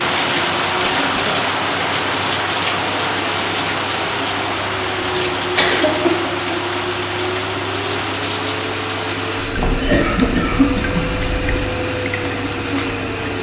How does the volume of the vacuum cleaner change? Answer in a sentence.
The volume of the vacuum cleaner goes up.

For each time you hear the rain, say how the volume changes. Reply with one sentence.
The rain can be heard from 0.0 to 13.3 s, getting quieter.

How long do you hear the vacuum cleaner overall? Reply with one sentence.
You can hear the vacuum cleaner for 13 seconds altogether.